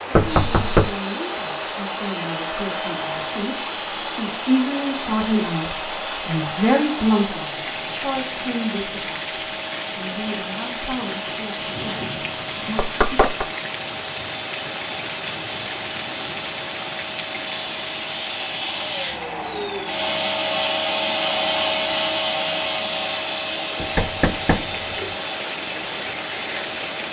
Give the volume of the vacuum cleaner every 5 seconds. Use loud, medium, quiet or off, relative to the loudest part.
medium, medium, medium, medium, loud, medium.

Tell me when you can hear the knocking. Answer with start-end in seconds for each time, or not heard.
0.1-0.9, 12.8-13.4, 23.8-25.1.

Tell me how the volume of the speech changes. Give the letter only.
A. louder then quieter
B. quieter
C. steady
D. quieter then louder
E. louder
A.